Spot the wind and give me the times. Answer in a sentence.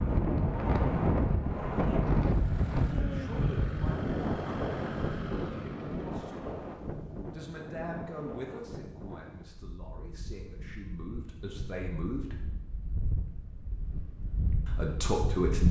The wind can be heard from 0.0 to 15.6 s.